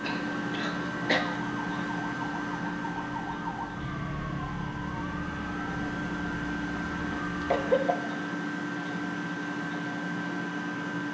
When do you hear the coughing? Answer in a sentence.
You can hear the coughing from 0.0 to 1.2 s and from 7.5 to 8.0 s.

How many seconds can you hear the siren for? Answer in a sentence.
You can hear the siren for 8 seconds altogether.